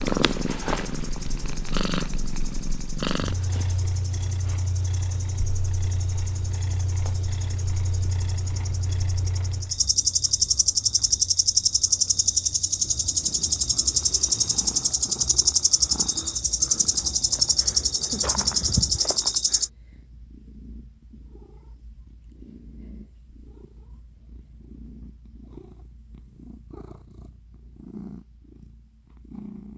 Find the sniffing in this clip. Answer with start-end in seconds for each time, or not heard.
not heard.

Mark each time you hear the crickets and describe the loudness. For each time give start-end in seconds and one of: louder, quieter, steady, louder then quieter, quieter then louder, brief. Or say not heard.
0.0-19.7 louder.